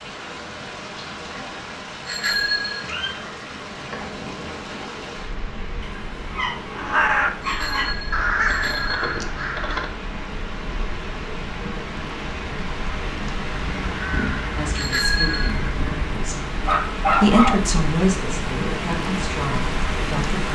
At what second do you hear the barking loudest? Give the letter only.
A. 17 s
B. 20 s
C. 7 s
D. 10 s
A.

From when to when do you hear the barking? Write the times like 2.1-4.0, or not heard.
5.8-7.9, 16.6-17.6.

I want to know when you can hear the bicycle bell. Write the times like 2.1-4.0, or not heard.
2.0-2.8, 7.4-9.2, 14.8-15.5.